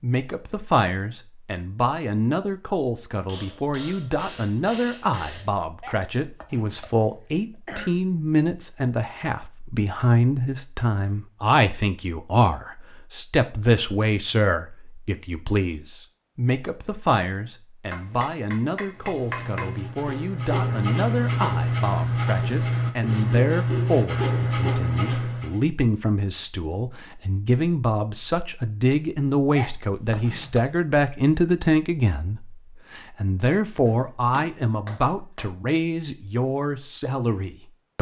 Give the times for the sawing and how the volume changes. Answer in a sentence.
The sawing can be heard from 18.9 to 25.6 s, getting louder.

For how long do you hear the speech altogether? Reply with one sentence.
You can hear the speech for 38 seconds altogether.